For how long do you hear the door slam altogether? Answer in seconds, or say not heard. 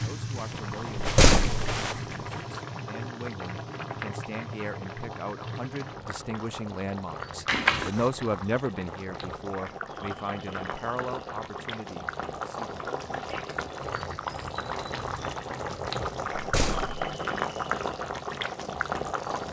2 s.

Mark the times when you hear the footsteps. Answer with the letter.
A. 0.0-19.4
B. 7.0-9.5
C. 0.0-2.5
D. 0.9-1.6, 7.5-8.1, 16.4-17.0
C.